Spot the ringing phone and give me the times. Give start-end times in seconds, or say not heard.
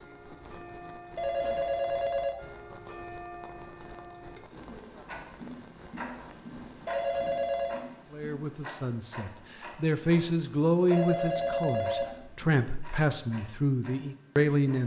1.1-2.6, 6.8-7.8, 10.9-12.6.